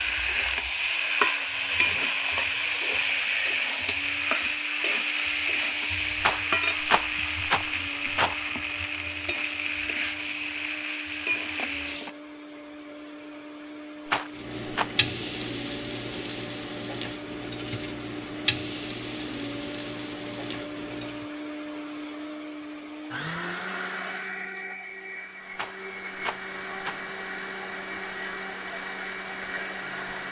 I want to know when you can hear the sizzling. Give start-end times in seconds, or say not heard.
0.0-12.1, 14.3-21.3.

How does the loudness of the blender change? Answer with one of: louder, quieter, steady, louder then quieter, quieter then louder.
louder.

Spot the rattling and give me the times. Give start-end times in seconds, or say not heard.
6.2-8.3, 14.1-14.9, 25.6-27.1.